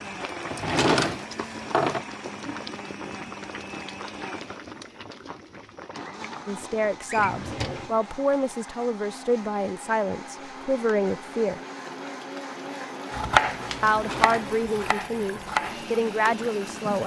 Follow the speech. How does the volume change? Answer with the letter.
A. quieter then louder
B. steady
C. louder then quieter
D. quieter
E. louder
B.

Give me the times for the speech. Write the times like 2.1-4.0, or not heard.
6.5-11.6, 13.8-17.0.